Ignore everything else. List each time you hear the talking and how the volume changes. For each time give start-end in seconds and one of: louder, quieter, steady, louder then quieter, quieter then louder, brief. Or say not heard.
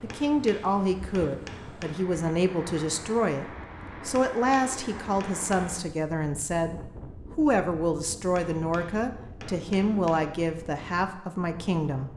0.0-12.1 steady.